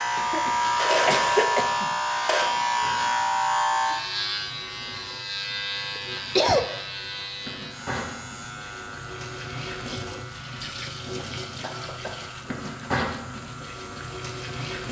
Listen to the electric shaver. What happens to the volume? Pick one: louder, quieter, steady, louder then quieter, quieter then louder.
quieter.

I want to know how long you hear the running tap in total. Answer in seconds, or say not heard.
15 s.